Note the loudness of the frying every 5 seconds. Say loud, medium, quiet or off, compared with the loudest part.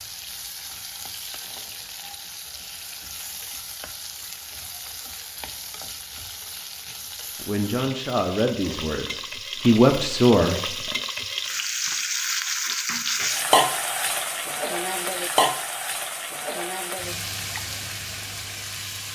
quiet, medium, loud, loud.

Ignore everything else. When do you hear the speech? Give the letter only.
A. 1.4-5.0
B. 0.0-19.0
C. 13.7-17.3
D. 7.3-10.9
D.